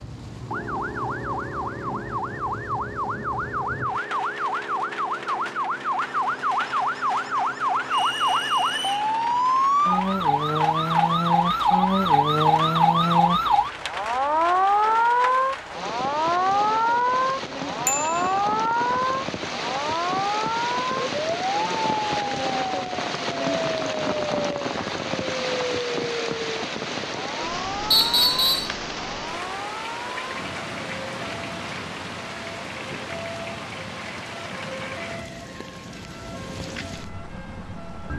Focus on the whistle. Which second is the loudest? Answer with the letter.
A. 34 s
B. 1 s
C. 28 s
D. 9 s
C.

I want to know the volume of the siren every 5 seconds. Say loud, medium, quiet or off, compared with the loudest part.
medium, loud, loud, loud, medium, quiet, quiet, quiet.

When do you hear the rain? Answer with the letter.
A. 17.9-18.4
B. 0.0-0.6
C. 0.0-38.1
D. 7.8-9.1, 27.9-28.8
C.